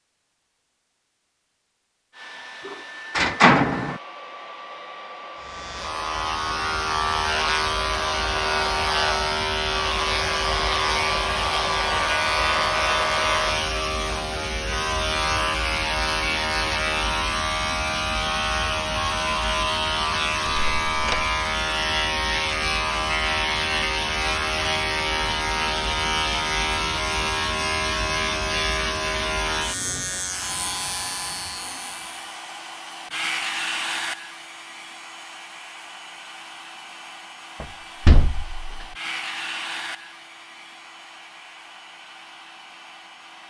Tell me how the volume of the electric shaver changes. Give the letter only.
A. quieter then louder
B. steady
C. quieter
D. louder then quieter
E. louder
B.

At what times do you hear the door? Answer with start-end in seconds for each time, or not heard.
2.6-4.0, 20.4-21.2, 37.6-38.9.